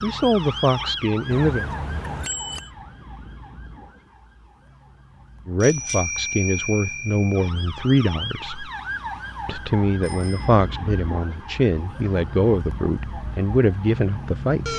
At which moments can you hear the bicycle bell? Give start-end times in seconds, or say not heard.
1.3-2.7, 5.6-7.5, 10.0-10.6.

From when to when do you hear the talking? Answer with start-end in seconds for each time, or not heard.
0.0-1.6, 5.5-8.7, 9.4-14.7.